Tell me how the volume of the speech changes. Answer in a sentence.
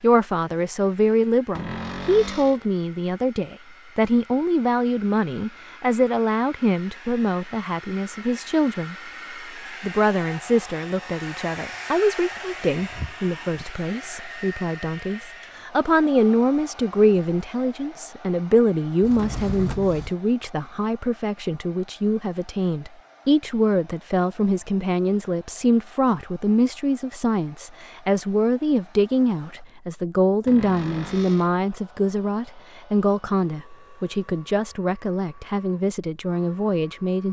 The loudness of the speech stays about the same.